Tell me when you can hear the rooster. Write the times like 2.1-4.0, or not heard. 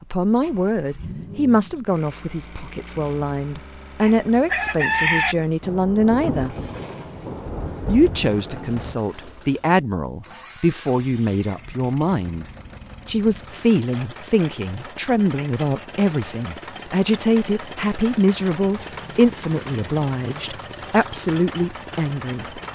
4.0-5.3.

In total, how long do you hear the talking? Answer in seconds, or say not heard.
21 s.